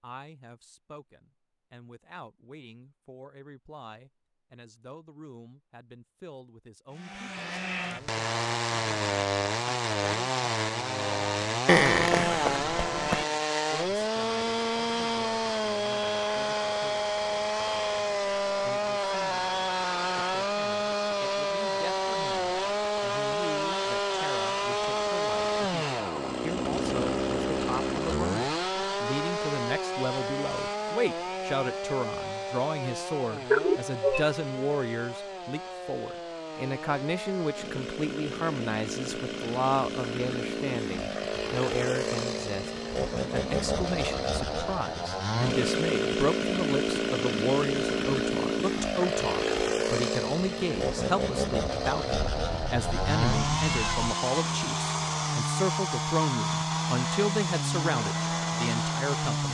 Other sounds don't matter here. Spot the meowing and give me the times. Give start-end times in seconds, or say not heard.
11.7-13.2, 33.5-34.2, 52.1-54.1.